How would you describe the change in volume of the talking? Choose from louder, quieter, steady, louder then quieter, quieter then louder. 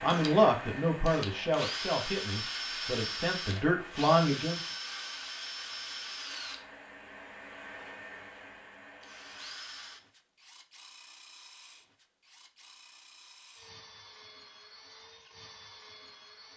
quieter then louder.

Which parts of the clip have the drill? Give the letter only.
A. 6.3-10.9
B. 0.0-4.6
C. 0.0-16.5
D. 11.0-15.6
C.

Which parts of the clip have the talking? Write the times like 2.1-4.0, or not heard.
0.0-4.6.